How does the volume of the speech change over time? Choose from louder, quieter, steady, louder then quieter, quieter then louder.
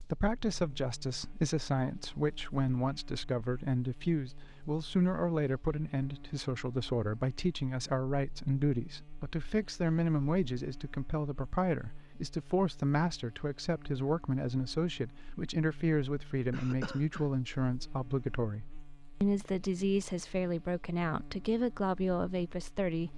steady.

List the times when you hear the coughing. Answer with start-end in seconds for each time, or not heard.
16.5-17.3.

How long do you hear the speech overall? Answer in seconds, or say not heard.
23 s.